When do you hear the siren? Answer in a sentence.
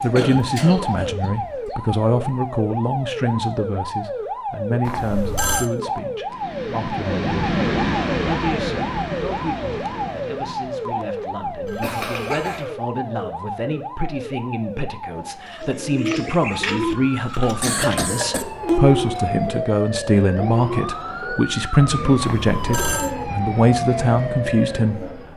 You can hear the siren from 0.0 to 25.3 s.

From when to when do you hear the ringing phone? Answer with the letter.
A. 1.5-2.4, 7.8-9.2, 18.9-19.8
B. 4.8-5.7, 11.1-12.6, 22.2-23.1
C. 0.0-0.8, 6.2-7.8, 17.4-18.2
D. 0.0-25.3
B.